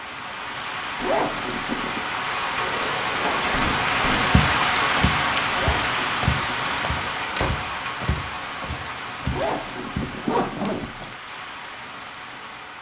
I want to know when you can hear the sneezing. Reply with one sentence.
You can't hear the sneezing here.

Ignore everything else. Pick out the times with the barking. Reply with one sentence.
The barking can't be heard in this clip.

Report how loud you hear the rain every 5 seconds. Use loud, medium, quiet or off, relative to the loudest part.
loud, loud, quiet.